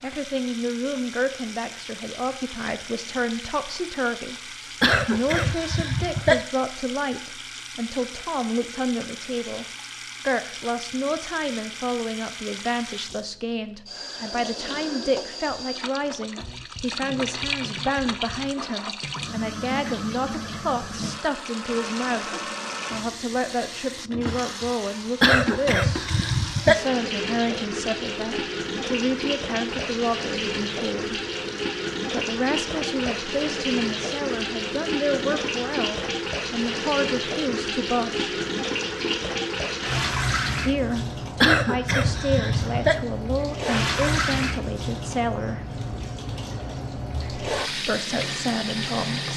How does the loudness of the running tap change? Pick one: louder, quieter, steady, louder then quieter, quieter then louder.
louder.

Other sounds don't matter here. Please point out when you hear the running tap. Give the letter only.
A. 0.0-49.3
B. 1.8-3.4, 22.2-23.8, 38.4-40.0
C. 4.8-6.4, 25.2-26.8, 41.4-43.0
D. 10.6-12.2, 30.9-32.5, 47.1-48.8
A.